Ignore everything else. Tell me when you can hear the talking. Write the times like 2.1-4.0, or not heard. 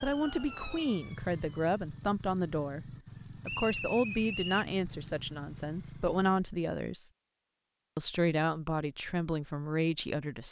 0.0-7.1, 8.0-10.4.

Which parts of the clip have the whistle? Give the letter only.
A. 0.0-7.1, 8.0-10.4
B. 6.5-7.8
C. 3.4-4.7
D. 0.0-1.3
C.